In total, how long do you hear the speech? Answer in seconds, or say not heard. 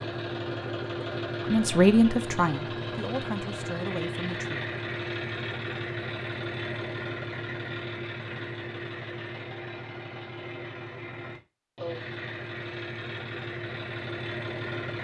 3 s.